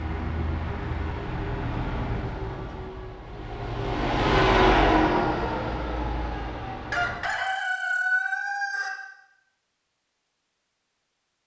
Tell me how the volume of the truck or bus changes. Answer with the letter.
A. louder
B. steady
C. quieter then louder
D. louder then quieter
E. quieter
D.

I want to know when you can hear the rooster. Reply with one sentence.
You can hear the rooster from 6.9 to 8.9 s.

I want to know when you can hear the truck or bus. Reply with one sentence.
You can hear the truck or bus from 0.0 to 7.2 s.